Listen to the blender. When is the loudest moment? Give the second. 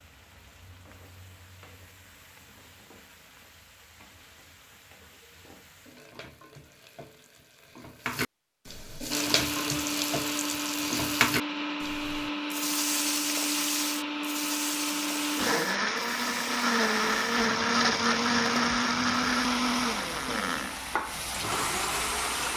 18 s.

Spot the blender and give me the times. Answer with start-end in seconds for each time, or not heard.
9.1-22.5.